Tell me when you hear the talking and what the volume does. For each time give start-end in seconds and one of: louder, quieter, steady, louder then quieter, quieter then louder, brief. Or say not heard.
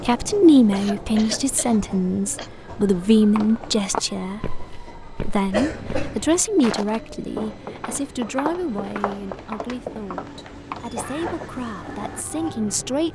0.0-13.0 quieter.